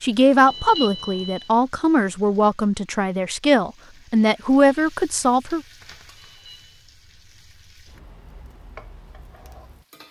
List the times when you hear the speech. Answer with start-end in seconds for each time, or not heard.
0.0-5.6.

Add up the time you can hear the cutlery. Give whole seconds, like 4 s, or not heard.
not heard.